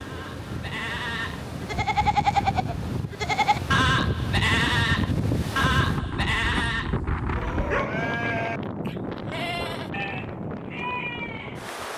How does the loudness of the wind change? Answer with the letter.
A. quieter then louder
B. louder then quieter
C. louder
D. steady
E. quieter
B.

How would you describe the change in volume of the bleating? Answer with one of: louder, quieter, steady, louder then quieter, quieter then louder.
quieter.